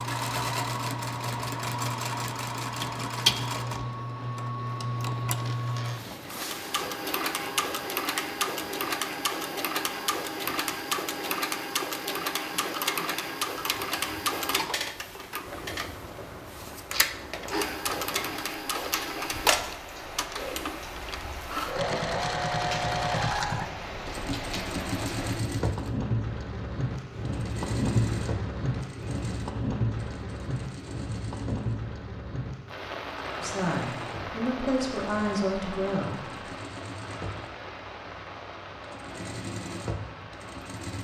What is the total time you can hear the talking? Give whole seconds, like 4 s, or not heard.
3 s.